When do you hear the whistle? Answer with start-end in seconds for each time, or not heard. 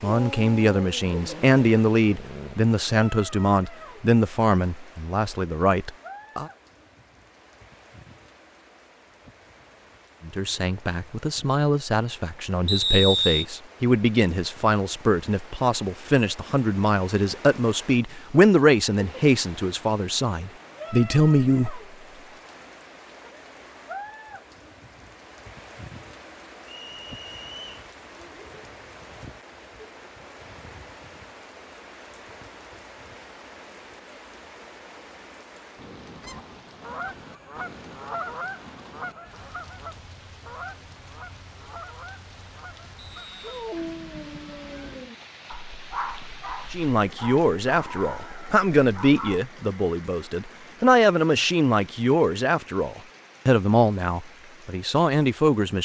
12.7-13.4, 26.6-27.9, 43.0-43.5.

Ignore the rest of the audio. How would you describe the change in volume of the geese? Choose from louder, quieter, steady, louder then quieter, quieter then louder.
quieter.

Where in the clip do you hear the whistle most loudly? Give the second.
13 s.